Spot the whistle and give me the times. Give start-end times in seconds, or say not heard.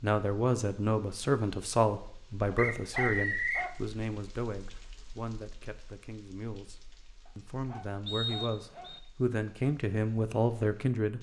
2.5-3.7, 8.1-9.0.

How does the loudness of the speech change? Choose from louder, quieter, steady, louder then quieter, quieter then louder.
quieter then louder.